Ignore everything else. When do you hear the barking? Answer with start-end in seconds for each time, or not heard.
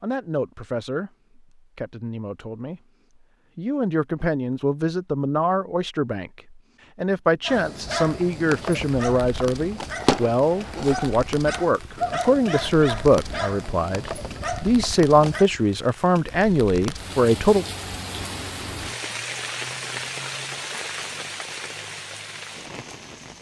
7.5-15.4.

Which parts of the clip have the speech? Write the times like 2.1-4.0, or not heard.
0.0-2.8, 3.5-17.6.